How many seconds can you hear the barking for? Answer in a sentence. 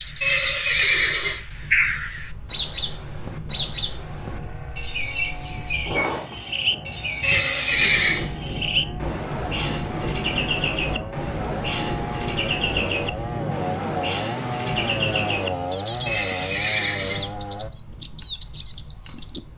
You can't hear the barking here.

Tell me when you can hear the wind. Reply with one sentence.
The wind can be heard from 0.0 to 19.5 s.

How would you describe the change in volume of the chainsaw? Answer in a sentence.
The loudness of the chainsaw goes up.